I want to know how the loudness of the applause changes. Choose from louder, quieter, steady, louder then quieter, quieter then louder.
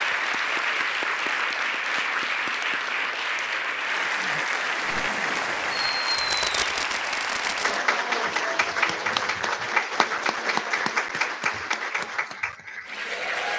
steady.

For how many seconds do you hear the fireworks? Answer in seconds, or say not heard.
3 s.